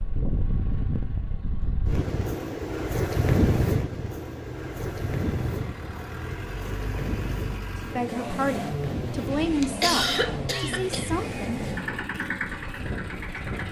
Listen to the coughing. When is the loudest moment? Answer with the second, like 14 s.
10 s.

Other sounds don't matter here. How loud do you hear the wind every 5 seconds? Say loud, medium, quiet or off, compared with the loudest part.
loud, medium, medium.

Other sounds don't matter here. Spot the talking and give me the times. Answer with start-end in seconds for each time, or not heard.
7.8-11.6.